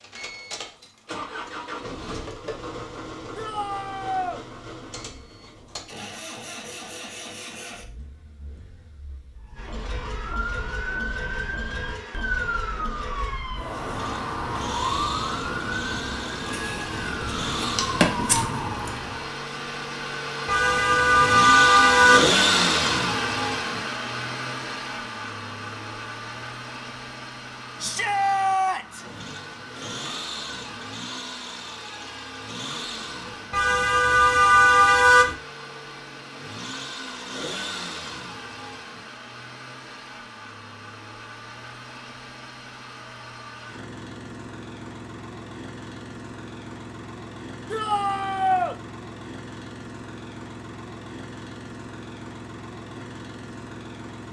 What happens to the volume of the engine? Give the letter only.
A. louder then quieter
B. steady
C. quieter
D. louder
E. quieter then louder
A.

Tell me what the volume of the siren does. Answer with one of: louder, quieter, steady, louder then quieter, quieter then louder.
louder.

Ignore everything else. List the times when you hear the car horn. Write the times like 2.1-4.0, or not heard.
20.4-22.3, 33.5-35.4.